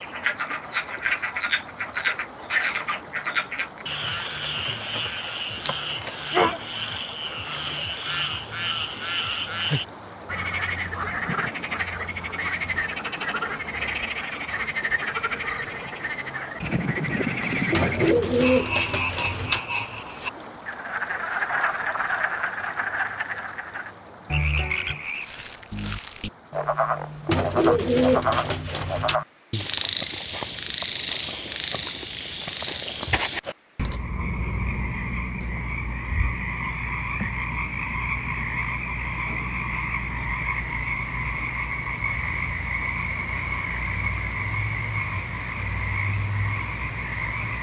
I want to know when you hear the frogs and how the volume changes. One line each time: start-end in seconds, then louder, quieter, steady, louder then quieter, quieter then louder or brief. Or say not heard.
0.0-47.5 steady.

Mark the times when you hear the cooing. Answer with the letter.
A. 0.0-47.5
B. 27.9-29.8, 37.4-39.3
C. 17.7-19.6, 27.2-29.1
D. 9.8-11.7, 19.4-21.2
C.